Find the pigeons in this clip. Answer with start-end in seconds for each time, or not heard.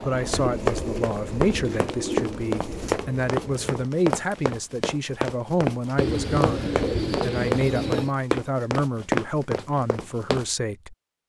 0.1-3.0, 6.0-8.2.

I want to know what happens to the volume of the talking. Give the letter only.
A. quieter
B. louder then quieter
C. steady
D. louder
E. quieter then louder
C.